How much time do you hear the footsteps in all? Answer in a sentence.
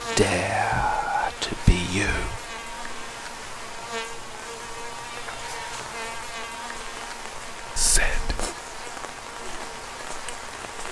The footsteps can't be heard in this clip.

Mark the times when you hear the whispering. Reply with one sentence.
You can hear the whispering from 0.1 to 2.4 s and from 7.8 to 8.5 s.